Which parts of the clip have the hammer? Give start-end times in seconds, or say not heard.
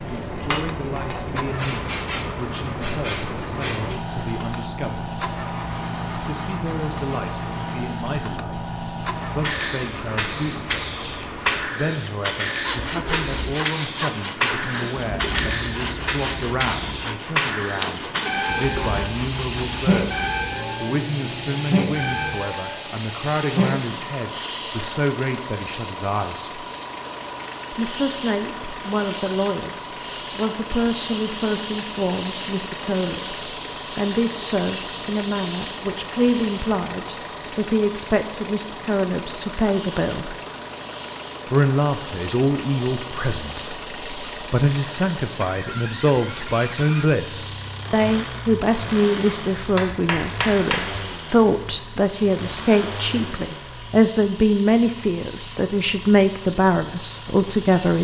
49.8-51.0.